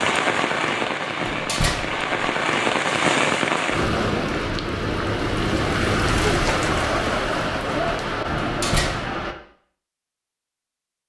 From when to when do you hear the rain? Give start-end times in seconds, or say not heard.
0.0-9.3.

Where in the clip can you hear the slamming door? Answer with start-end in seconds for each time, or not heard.
1.2-2.0, 8.4-9.2.